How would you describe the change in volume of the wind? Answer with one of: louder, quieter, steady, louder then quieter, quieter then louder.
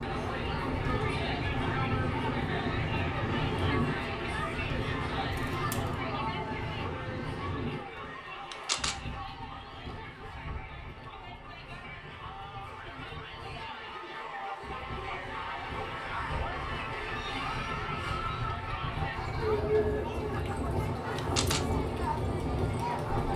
quieter then louder.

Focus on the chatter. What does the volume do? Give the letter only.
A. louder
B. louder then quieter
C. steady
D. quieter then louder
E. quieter
D.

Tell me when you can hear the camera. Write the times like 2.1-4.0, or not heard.
5.3-6.0, 8.5-9.0, 21.1-21.7.